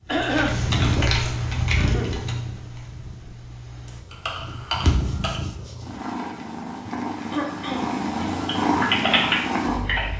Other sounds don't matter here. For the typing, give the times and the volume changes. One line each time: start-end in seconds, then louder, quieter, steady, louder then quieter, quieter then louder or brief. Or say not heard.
0.1-5.5 quieter then louder
8.2-10.1 brief.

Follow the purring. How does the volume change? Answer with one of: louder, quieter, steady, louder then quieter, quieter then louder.
quieter then louder.